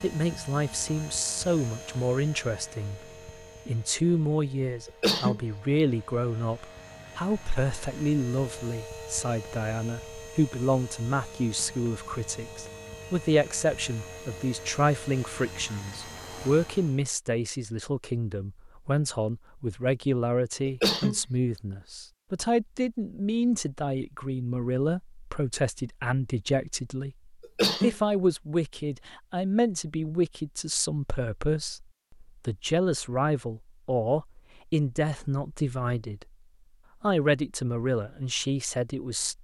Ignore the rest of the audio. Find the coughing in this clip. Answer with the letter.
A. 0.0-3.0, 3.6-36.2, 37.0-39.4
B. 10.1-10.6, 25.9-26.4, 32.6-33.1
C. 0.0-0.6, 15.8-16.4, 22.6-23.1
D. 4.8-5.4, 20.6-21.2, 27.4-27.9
D.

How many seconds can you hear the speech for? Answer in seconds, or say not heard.
38 s.